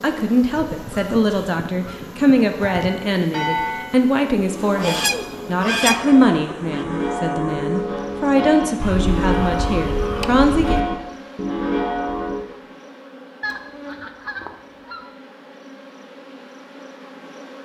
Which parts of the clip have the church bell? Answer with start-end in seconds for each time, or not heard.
2.6-12.4.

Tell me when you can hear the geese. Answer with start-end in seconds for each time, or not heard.
0.5-2.5, 4.8-6.8, 8.8-10.8, 13.4-15.1.